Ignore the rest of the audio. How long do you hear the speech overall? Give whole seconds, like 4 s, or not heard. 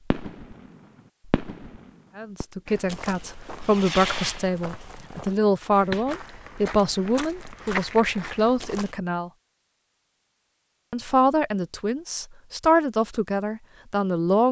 11 s.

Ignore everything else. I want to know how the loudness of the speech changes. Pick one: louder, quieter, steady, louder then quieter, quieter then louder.
steady.